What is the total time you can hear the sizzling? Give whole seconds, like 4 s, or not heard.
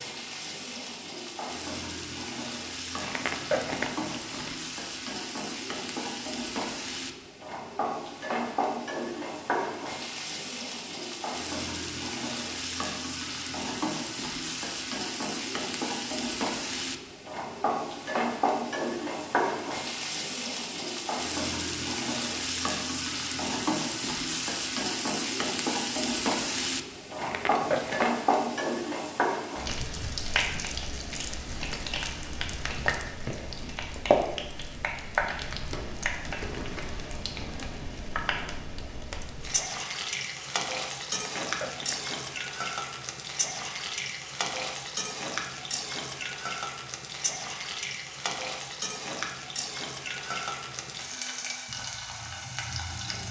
53 s.